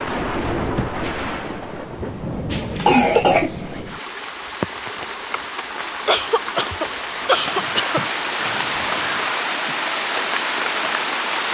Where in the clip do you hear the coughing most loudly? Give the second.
3 s.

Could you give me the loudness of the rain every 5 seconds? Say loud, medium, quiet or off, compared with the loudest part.
medium, loud, loud.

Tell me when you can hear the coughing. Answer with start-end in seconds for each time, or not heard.
2.5-3.8, 6.0-8.0.